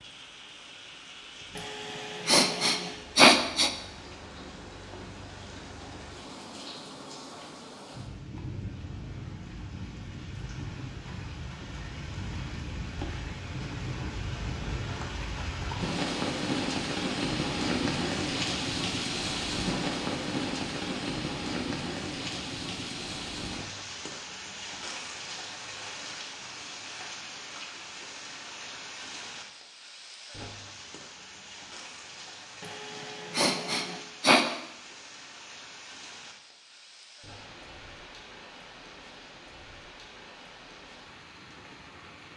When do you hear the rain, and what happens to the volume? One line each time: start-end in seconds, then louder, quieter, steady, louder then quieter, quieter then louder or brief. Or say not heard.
0.0-42.3 louder then quieter.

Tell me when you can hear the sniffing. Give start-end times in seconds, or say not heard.
1.6-3.7, 32.6-34.5.